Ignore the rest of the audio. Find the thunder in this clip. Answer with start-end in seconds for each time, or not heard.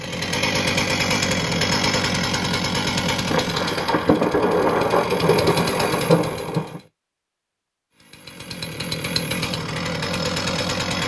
3.2-6.8.